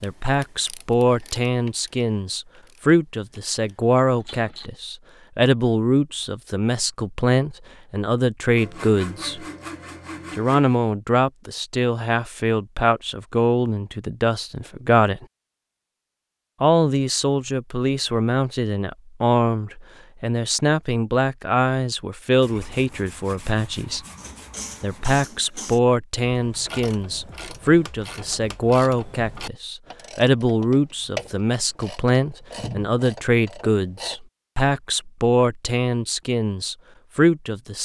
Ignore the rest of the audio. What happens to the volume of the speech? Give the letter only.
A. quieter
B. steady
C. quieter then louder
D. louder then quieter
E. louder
B.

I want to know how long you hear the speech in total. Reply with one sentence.
You can hear the speech for 35 seconds altogether.